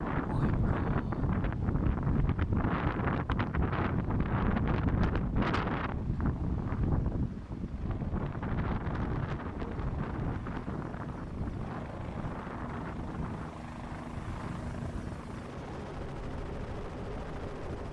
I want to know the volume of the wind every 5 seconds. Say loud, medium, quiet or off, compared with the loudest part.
loud, loud, medium, quiet.